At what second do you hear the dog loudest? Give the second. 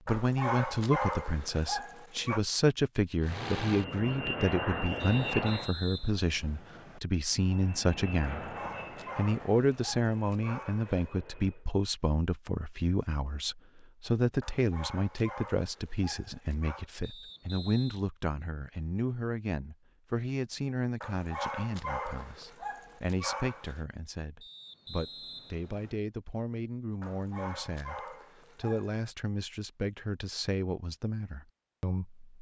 1 s.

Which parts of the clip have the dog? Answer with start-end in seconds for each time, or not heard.
0.1-2.4, 8.2-11.1, 14.4-16.9, 21.0-23.8, 27.0-28.9.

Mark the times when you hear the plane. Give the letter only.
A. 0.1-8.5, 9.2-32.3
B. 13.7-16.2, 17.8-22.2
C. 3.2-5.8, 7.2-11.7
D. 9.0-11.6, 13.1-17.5
C.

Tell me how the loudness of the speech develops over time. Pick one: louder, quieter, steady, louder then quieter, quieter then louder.
quieter.